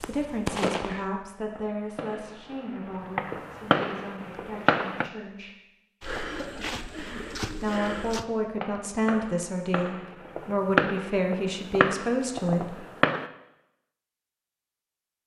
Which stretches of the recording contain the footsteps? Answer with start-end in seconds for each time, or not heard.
6.0-8.2.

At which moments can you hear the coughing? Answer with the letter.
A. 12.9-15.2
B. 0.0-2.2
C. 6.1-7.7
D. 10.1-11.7
C.